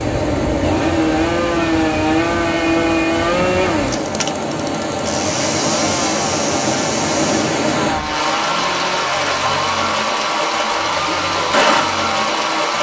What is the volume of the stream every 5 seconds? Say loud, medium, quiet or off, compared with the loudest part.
medium, loud, loud.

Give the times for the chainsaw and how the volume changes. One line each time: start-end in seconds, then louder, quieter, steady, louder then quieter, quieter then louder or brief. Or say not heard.
0.0-12.7 quieter.